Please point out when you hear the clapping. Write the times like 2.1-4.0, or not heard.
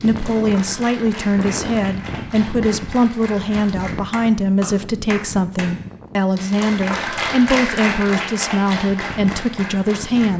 0.0-5.7, 6.3-10.3.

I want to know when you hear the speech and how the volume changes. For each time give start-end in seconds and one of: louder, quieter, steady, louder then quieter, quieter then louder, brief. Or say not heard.
0.0-10.3 steady.